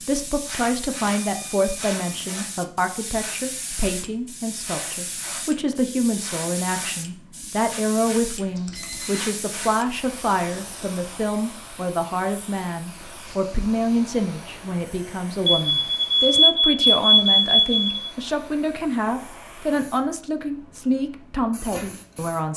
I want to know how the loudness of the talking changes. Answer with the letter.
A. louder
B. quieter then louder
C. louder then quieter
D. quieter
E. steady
E.